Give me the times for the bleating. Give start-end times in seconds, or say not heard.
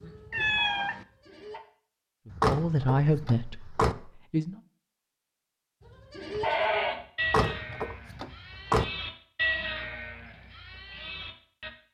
0.0-1.6, 5.8-11.7.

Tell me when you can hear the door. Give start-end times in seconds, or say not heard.
2.3-4.0, 7.2-8.8.